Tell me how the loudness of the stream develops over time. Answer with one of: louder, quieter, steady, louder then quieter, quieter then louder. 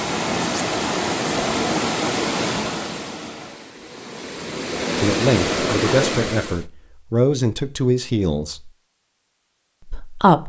quieter then louder.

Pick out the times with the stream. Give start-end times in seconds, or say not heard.
0.0-6.7.